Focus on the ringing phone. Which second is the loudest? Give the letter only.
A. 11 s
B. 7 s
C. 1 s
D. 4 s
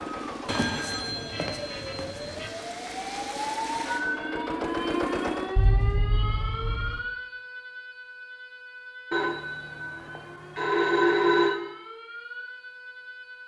A.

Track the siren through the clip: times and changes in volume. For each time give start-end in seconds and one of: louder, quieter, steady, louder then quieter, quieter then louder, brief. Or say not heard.
0.0-13.4 louder then quieter.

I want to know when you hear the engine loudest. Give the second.
5 s.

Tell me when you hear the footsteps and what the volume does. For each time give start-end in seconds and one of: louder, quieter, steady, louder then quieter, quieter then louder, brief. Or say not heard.
not heard.